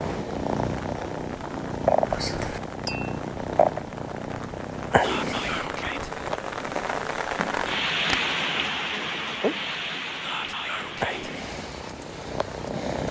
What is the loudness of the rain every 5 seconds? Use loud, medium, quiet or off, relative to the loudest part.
quiet, loud, medium.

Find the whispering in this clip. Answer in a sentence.
The whispering can be heard from 2.0 to 2.6 s, from 5.0 to 6.1 s and from 10.2 to 11.3 s.